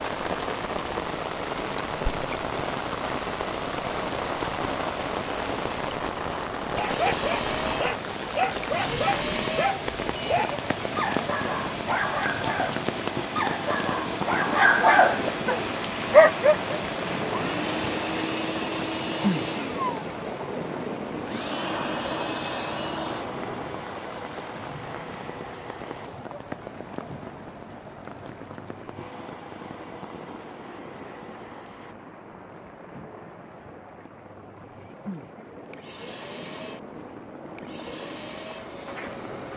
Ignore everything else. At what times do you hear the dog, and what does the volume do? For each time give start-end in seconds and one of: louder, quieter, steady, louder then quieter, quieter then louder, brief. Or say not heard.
6.7-16.8 louder.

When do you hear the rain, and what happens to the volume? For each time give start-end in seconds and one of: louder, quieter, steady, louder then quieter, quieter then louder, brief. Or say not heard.
0.0-39.5 quieter.